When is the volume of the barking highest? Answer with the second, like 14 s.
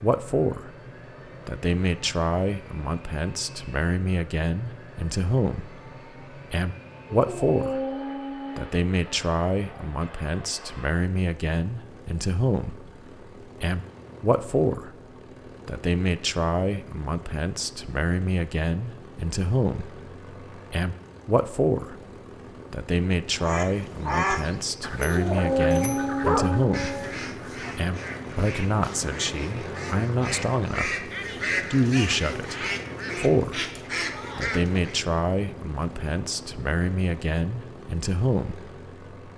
26 s.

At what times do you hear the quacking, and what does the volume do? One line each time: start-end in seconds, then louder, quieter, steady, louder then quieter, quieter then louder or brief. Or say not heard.
23.3-35.0 quieter then louder.